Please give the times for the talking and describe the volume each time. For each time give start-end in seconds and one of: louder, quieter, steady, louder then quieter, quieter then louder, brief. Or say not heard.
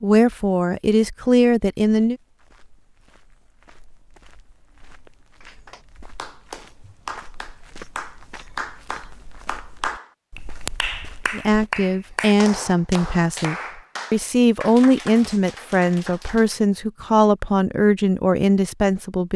0.0-2.1 brief
11.3-19.3 steady.